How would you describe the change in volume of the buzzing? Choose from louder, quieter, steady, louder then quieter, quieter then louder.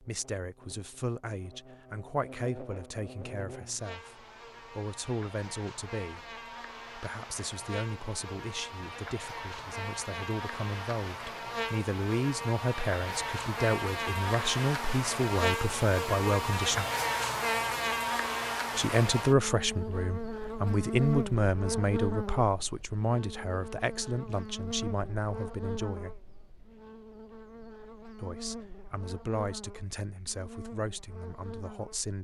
louder then quieter.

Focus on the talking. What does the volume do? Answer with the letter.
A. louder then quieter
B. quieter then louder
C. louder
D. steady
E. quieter
A.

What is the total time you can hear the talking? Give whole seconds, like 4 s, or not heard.
28 s.